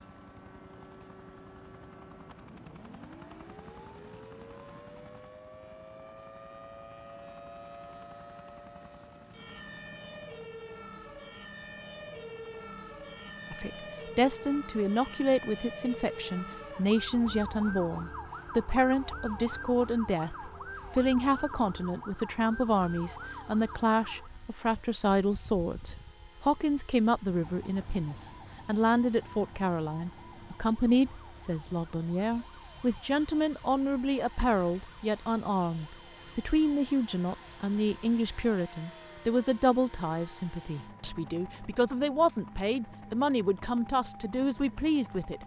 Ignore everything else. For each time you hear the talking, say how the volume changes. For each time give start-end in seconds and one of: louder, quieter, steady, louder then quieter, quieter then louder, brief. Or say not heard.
13.5-45.4 steady.